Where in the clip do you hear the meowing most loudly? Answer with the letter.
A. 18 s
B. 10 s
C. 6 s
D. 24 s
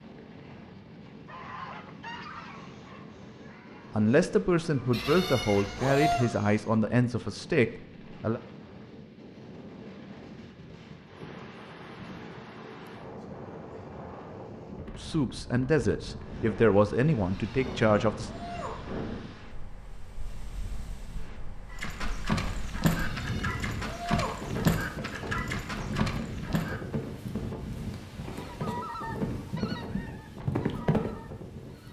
C.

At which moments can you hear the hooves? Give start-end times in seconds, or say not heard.
21.7-31.1.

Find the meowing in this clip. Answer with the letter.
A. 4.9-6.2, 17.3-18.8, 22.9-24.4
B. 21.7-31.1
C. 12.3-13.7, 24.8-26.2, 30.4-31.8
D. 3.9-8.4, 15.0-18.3
A.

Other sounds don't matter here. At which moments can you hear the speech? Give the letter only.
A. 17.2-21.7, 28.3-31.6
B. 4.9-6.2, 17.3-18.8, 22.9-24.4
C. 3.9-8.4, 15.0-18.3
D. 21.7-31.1
C.